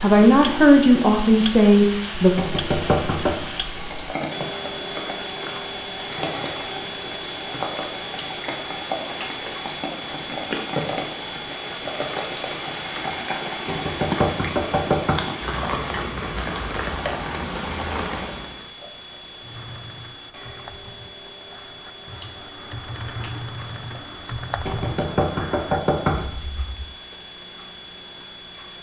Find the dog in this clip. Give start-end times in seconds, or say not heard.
not heard.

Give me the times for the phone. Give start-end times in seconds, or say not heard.
not heard.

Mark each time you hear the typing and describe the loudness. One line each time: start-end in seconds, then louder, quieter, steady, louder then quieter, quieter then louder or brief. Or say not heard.
19.4-26.9 louder then quieter.